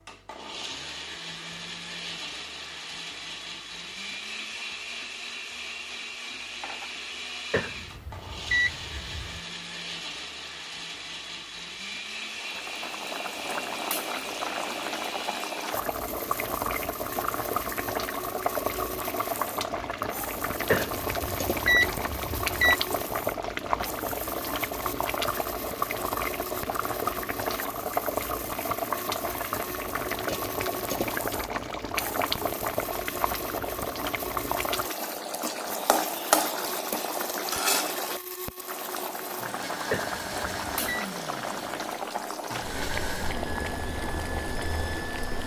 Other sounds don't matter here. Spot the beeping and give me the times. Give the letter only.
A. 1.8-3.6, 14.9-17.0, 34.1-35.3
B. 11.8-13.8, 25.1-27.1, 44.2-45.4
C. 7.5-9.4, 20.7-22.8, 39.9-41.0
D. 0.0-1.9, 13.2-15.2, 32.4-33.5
C.